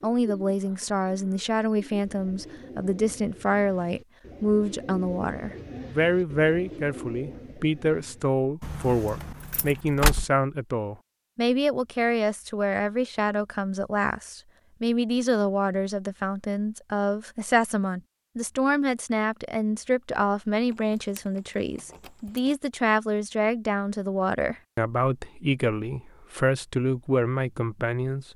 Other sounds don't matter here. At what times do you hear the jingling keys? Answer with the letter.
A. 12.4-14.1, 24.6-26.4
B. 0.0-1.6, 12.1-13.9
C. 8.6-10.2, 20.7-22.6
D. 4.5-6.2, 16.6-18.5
C.